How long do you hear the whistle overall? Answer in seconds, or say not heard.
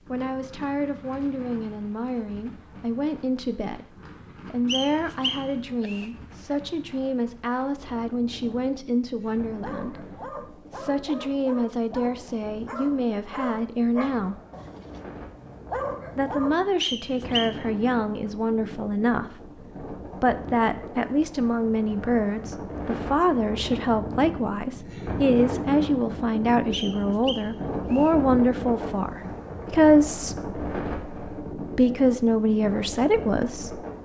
4 s.